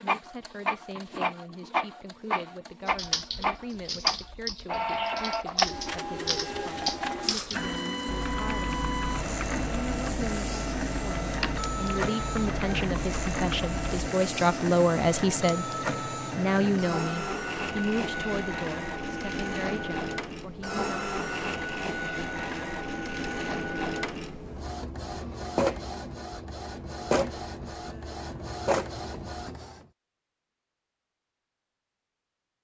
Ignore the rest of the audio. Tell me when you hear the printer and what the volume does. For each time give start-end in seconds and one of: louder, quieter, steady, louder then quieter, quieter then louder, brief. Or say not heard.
0.0-29.9 steady.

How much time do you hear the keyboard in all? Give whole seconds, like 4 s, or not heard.
11 s.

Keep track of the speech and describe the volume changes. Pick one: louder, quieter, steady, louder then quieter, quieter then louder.
louder then quieter.